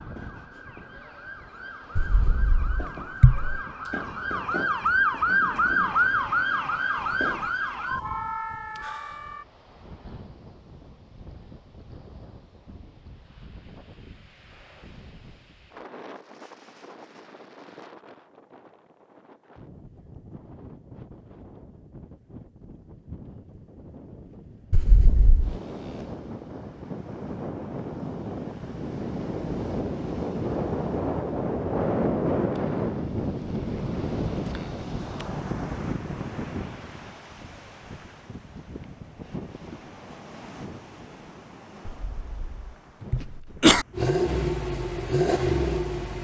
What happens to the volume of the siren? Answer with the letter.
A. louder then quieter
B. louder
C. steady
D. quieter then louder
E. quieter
A.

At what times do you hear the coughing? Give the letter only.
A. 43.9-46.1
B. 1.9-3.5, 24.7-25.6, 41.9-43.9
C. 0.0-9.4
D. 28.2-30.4
B.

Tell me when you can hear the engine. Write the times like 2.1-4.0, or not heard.
43.9-46.1.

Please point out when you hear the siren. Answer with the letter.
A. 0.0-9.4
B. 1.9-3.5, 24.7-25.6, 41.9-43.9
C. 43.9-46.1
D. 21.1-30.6
A.